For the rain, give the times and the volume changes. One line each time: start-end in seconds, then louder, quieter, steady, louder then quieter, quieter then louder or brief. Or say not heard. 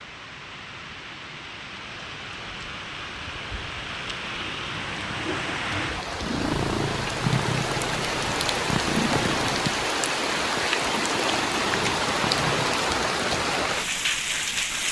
0.0-14.8 louder.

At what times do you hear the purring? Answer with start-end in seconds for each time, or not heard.
6.2-12.8.